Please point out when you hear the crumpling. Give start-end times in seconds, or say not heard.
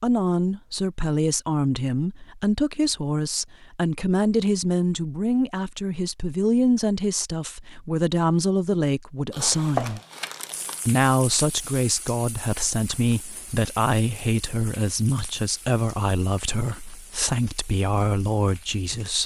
9.3-10.9.